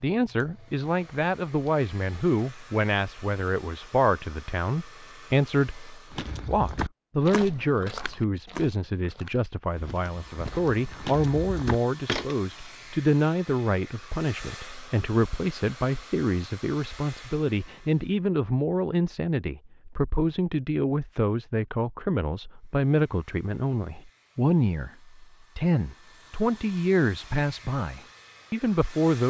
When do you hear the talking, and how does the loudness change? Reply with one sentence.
You can hear the talking from 0.0 to 29.2 s, at a steady volume.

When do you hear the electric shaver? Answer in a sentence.
The electric shaver can't be heard in this clip.